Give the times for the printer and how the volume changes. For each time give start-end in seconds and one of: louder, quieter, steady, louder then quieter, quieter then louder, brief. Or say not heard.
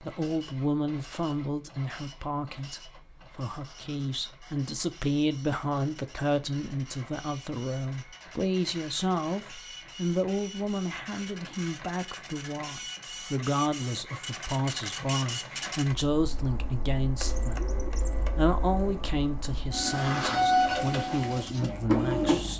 0.0-22.5 louder.